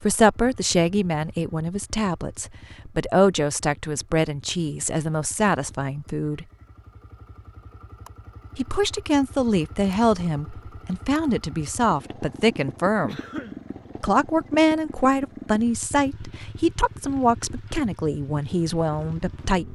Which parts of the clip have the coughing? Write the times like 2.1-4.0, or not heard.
13.1-13.7.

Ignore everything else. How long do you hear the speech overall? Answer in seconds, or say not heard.
17 s.